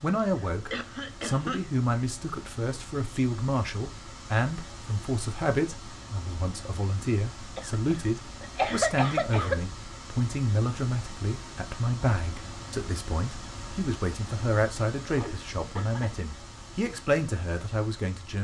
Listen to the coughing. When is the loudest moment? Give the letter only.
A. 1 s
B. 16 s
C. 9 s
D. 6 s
C.